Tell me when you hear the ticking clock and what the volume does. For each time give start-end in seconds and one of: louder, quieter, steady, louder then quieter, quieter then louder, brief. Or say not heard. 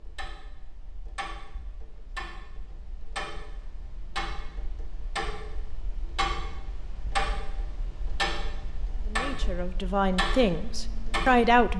0.0-11.7 louder.